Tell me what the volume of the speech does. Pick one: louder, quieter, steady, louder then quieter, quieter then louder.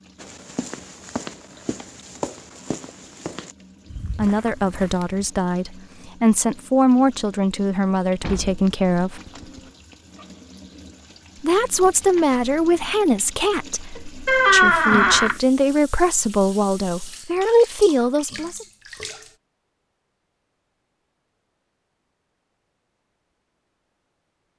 steady.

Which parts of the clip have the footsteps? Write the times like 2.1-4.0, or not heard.
0.2-5.2.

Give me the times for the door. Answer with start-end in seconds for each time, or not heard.
8.2-9.7, 14.2-15.3.